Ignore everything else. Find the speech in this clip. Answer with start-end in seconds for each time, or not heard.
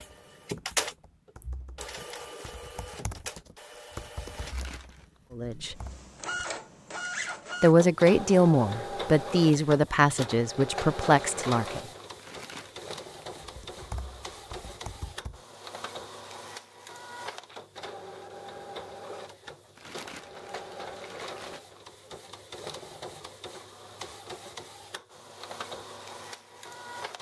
5.3-5.8, 7.6-11.8.